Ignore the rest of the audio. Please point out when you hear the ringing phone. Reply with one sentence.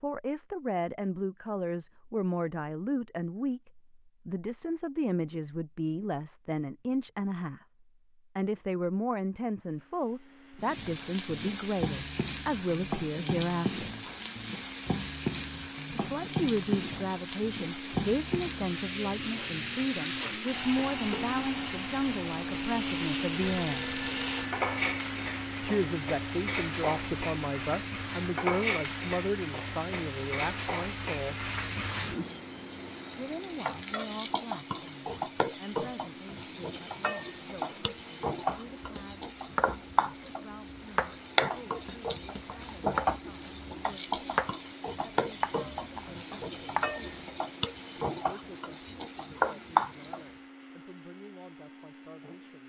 You can hear the ringing phone from 23.4 to 25.0 s.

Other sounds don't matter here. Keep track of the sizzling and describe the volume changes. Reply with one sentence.
The volume of the sizzling stays about the same.